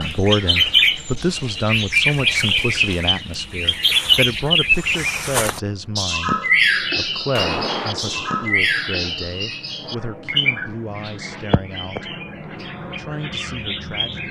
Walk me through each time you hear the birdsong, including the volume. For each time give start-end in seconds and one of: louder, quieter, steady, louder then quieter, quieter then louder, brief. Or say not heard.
0.0-14.2 quieter.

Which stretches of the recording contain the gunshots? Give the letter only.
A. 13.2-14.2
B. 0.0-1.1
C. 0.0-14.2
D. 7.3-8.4
D.